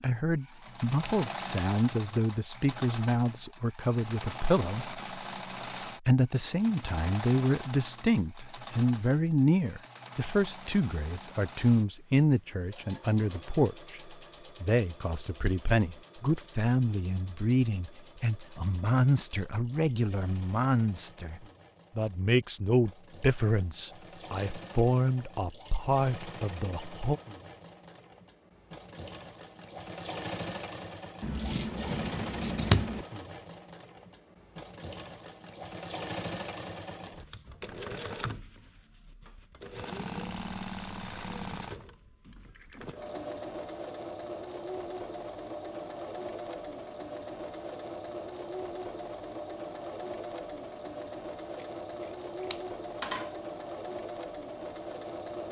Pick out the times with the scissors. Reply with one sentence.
You can hear the scissors from 1.0 to 1.8 s, from 31.2 to 33.0 s and from 52.5 to 53.3 s.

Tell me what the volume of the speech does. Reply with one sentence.
The loudness of the speech stays about the same.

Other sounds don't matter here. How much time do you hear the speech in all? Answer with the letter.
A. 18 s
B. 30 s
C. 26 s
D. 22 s
C.